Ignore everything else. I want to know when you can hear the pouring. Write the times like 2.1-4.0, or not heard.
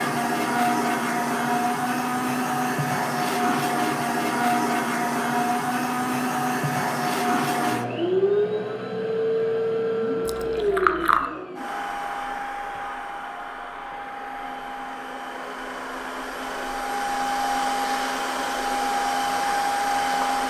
10.2-11.3.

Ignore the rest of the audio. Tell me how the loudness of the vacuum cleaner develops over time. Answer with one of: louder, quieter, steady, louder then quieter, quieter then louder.
quieter then louder.